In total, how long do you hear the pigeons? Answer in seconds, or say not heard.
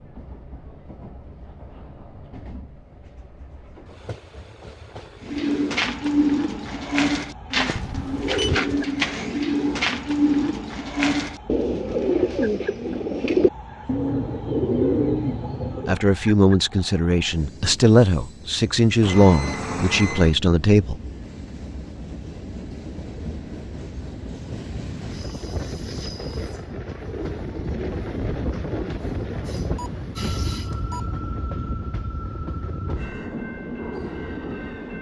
11 s.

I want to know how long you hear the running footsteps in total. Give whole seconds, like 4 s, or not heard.
not heard.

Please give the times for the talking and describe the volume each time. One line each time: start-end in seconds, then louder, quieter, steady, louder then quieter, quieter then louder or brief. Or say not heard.
15.8-20.9 steady.